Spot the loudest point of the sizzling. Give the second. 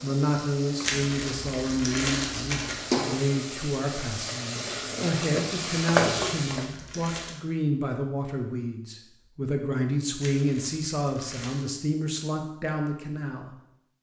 6 s.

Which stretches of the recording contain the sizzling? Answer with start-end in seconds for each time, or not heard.
0.0-6.8.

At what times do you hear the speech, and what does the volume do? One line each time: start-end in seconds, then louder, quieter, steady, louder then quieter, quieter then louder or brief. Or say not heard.
0.0-13.6 steady.